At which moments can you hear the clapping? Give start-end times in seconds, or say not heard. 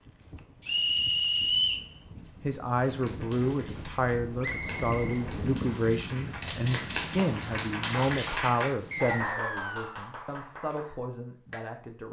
2.7-11.7.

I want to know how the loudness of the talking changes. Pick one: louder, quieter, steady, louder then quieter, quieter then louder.
quieter.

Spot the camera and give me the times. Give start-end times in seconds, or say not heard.
6.4-7.2.